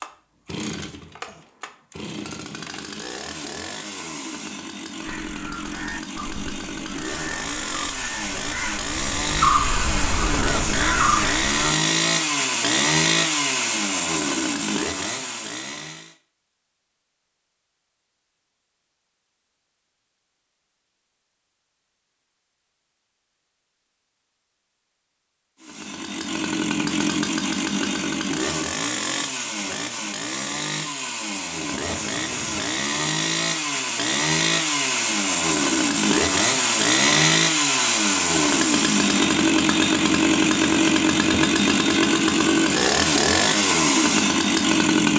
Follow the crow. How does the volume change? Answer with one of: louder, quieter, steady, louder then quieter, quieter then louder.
louder.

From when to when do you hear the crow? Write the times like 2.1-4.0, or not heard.
5.0-11.8.